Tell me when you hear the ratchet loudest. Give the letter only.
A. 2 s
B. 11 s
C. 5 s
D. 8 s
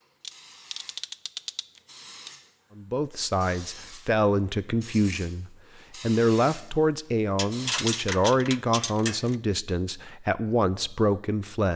D.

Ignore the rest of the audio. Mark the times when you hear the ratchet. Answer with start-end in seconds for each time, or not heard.
0.2-2.3, 7.3-9.3.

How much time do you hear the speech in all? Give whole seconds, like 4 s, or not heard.
9 s.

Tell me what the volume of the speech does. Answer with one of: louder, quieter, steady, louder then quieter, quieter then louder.
steady.